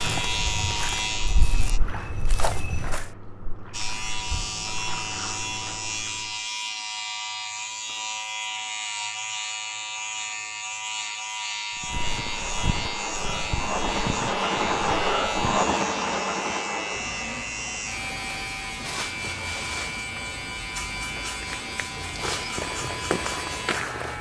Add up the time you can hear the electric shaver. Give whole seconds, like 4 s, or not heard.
22 s.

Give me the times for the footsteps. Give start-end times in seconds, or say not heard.
0.0-3.1, 11.8-15.7, 21.3-24.1.